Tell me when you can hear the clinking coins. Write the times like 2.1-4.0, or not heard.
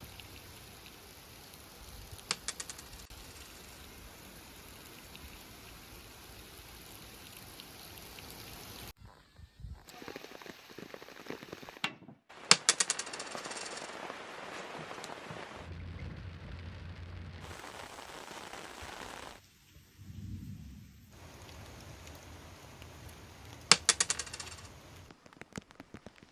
2.3-3.8, 12.5-13.8, 23.7-24.4.